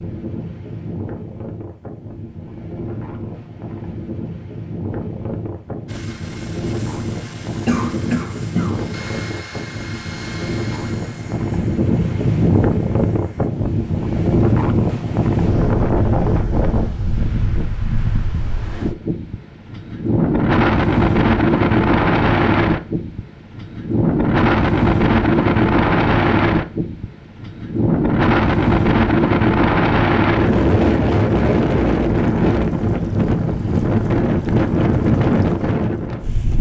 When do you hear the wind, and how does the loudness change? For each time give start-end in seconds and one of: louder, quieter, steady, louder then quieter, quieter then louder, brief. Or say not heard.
0.0-36.5 louder.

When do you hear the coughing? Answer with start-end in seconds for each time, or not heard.
7.7-8.8.